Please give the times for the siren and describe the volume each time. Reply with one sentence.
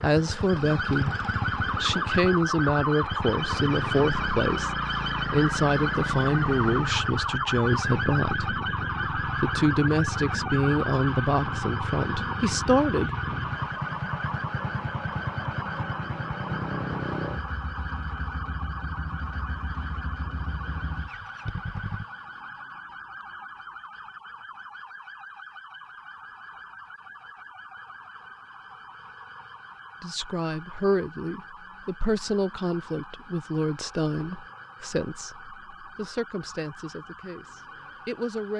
The siren can be heard from 0.0 to 38.5 s, getting quieter.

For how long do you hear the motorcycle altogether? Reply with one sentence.
The motorcycle can be heard for 22 seconds in total.